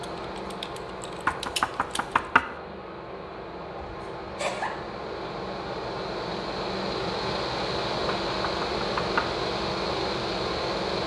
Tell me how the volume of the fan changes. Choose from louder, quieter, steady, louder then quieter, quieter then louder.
louder.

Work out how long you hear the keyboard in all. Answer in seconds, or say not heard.
2 s.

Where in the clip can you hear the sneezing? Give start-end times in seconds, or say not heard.
3.8-4.7.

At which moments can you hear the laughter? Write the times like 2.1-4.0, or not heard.
not heard.